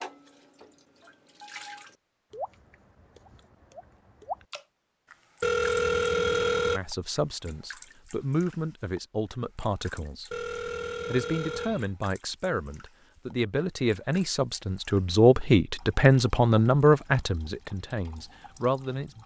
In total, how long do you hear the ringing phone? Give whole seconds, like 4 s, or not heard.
3 s.